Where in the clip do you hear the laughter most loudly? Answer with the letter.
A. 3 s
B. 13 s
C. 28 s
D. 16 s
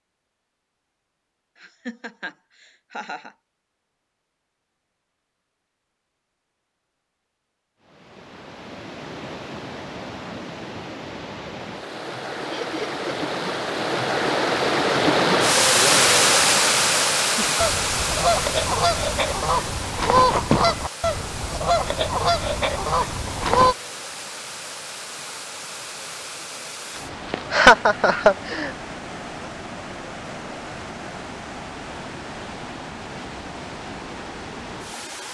C.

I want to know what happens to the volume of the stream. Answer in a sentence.
The volume of the stream goes up, then down.